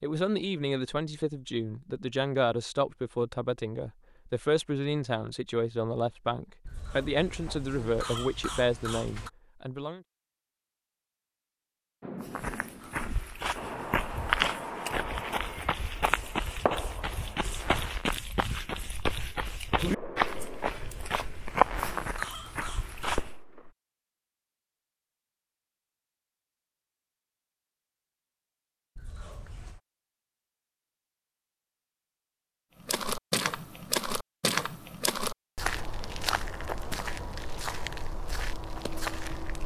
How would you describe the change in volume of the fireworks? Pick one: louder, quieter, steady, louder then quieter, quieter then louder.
steady.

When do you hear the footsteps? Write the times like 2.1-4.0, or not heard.
12.2-23.3, 32.8-39.6.